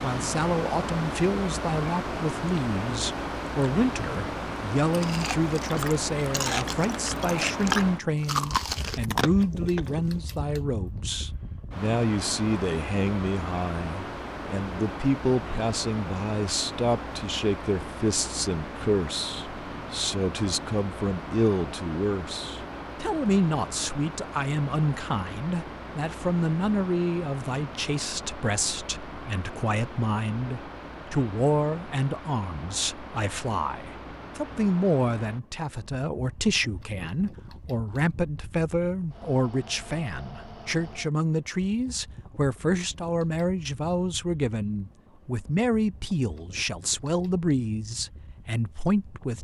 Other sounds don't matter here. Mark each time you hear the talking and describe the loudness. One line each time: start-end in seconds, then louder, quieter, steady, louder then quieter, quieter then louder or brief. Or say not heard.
0.0-49.4 steady.